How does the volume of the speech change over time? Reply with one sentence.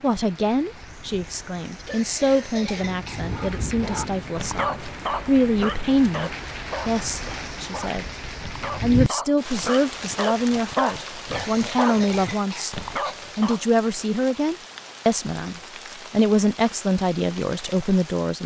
The volume of the speech stays about the same.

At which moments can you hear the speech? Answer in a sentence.
The speech can be heard from 0.0 to 8.1 s, from 8.8 to 12.8 s and from 13.3 to 18.4 s.